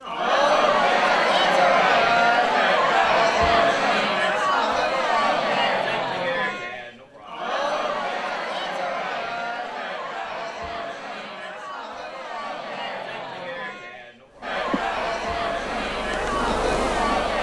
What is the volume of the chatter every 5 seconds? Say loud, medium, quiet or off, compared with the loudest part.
loud, medium, quiet, medium.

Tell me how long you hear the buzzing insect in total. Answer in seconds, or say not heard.
3 s.